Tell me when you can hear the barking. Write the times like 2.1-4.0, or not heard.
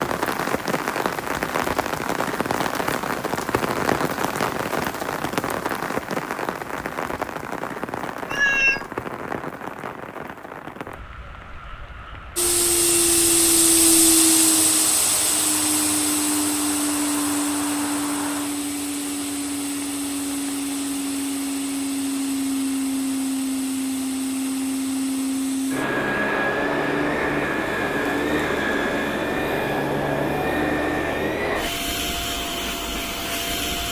not heard.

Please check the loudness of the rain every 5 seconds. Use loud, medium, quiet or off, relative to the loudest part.
loud, loud, quiet, medium, off, off, off.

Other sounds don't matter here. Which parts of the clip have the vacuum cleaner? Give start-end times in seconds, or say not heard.
12.3-33.8.